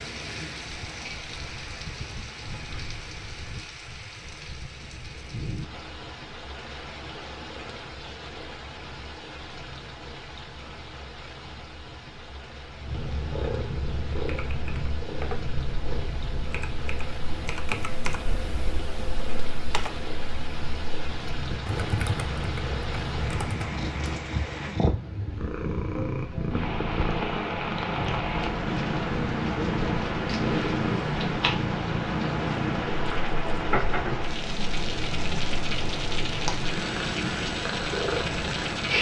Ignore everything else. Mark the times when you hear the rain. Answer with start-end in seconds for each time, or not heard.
0.0-38.9.